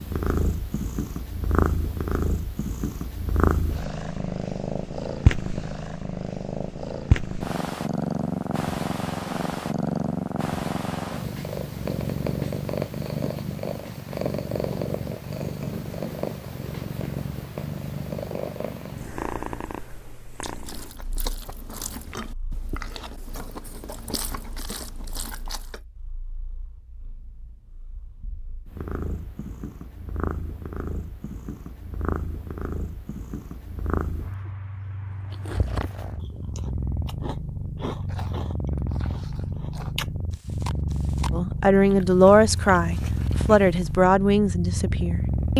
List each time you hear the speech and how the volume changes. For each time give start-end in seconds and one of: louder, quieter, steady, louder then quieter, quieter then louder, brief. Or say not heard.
41.3-45.5 quieter.